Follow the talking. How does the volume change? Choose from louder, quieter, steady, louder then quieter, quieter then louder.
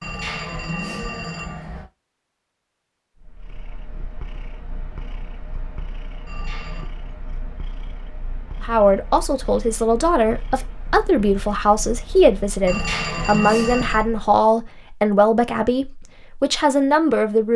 steady.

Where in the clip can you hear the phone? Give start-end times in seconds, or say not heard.
0.0-1.9, 6.2-6.9, 12.7-14.1.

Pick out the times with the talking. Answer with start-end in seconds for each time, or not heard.
8.6-17.5.